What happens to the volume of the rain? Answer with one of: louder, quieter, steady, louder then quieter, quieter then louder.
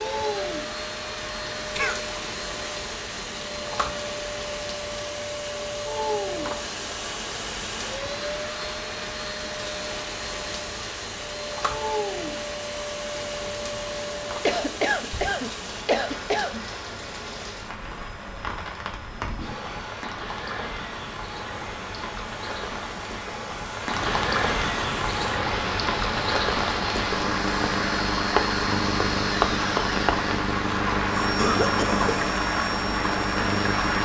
louder.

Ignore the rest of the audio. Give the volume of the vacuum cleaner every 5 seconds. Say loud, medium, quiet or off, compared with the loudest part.
loud, loud, loud, medium, quiet, loud, loud.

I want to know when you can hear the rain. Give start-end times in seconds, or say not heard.
0.0-34.0.